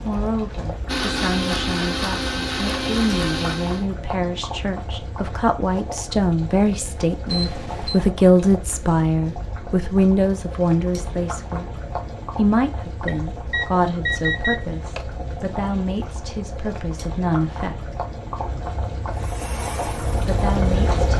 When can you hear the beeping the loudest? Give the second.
14 s.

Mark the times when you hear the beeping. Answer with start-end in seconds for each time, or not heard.
7.2-8.0, 13.1-15.1.